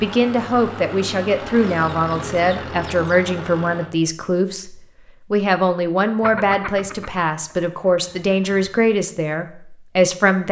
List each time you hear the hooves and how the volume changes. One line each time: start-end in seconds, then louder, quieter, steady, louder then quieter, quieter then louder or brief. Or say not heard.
not heard.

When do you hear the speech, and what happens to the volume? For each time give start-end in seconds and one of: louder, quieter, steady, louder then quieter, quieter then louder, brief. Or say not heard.
0.0-10.4 steady.